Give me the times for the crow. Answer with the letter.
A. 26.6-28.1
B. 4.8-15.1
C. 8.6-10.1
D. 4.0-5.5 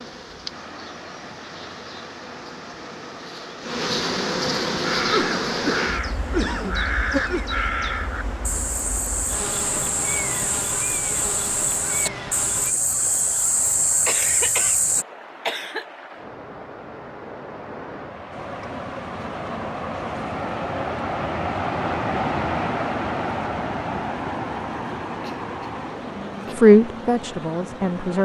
B.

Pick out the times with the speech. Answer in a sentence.
The speech can be heard from 26.6 to 28.1 s.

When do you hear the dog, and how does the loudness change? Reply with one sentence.
You can't hear the dog here.